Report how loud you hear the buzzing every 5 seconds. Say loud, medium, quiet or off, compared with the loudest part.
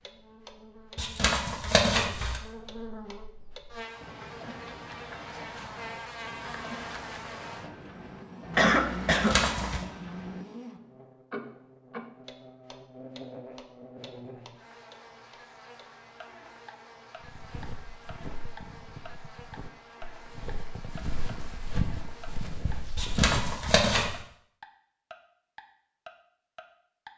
medium, loud, medium, medium, medium, off.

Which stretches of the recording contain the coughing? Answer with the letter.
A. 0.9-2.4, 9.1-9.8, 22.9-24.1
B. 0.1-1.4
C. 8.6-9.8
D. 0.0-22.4
C.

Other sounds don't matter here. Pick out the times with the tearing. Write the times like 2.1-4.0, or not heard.
0.9-2.4, 9.1-9.8, 22.9-24.1.